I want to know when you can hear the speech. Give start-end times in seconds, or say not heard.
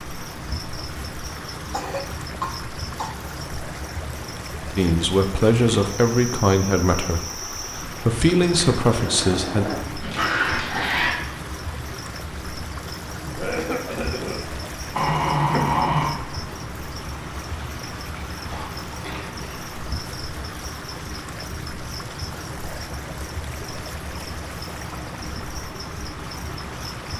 4.8-9.7.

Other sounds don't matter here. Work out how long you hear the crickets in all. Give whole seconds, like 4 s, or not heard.
27 s.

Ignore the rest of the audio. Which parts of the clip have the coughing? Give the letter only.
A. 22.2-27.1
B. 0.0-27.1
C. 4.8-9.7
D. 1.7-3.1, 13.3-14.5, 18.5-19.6
D.